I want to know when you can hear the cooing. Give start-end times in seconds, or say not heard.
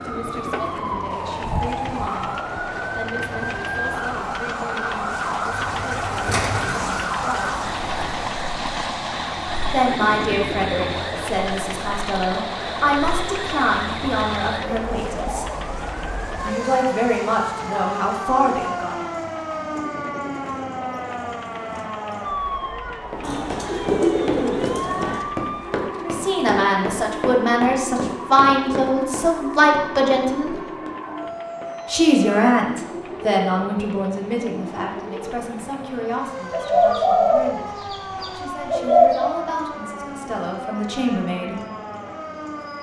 5.5-8.2, 23.2-25.2, 36.5-39.4.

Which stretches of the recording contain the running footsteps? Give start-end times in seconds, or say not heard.
23.1-31.8.